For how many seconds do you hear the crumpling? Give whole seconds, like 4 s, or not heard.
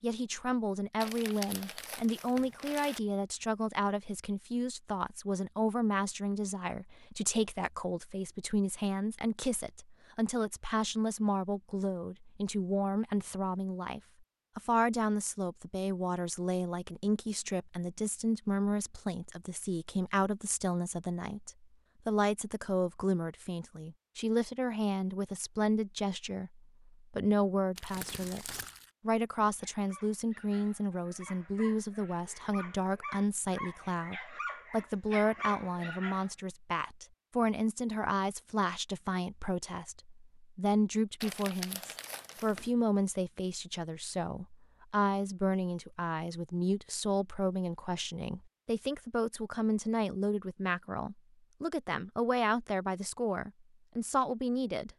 5 s.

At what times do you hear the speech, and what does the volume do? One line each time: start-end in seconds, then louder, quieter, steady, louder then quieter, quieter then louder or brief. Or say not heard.
0.0-54.9 steady.